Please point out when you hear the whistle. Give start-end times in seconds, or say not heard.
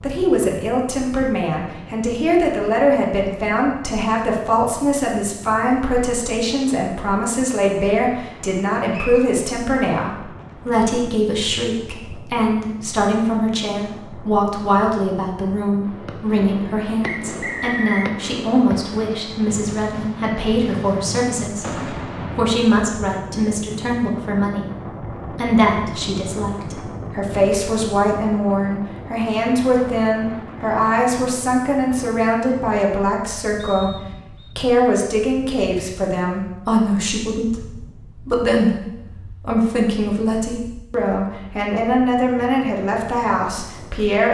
8.9-9.3, 17.0-18.1, 33.5-34.5.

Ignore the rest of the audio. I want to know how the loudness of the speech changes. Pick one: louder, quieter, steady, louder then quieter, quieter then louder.
steady.